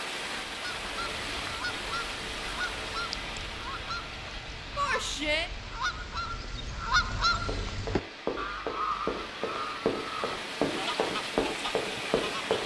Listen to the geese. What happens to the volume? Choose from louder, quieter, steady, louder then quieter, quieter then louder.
louder then quieter.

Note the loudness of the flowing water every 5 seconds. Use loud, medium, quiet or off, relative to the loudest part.
loud, medium, loud.